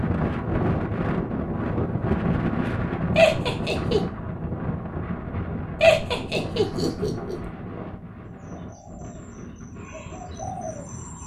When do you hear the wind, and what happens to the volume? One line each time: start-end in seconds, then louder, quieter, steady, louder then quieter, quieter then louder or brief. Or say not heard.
0.0-11.2 quieter.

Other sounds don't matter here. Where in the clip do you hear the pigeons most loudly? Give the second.
11 s.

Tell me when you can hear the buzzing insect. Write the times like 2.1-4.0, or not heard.
not heard.